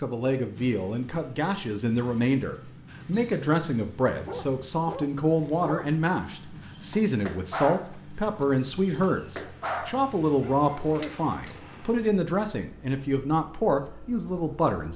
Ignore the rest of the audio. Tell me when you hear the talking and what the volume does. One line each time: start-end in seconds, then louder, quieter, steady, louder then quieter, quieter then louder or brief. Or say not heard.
0.0-14.9 steady.